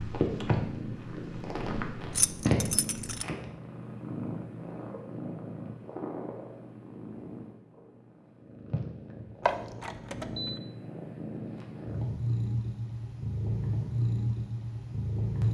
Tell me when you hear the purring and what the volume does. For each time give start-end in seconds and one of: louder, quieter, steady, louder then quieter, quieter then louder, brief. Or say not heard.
0.0-15.4 quieter then louder.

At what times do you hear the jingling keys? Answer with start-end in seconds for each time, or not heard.
2.1-3.2, 9.4-10.6.